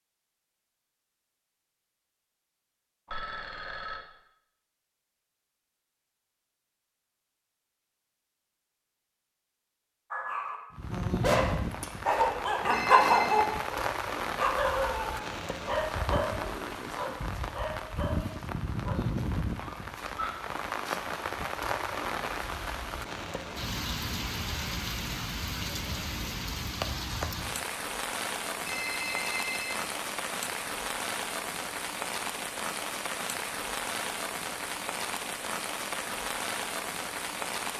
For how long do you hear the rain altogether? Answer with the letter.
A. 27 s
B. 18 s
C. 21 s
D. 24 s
A.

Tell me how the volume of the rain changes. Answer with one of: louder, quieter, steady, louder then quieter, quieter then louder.
steady.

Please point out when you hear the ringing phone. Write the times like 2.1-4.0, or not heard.
3.0-4.0, 12.7-13.5, 28.6-29.9.